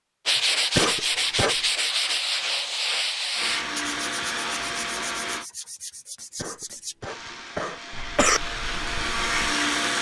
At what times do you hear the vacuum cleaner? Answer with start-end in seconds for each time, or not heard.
3.4-5.5, 7.0-9.9.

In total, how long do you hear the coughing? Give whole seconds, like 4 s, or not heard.
3 s.